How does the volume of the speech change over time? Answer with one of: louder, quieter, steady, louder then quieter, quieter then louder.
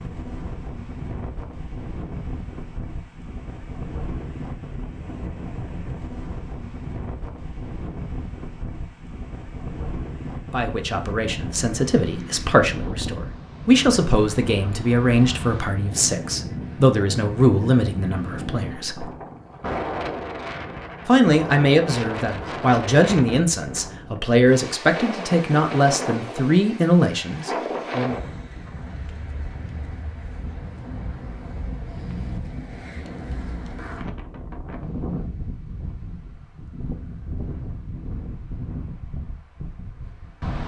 steady.